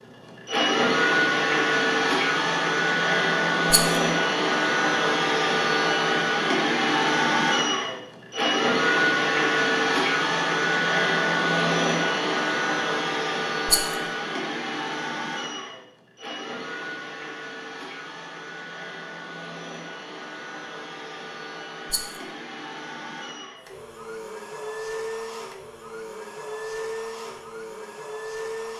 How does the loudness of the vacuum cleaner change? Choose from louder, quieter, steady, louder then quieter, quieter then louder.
quieter.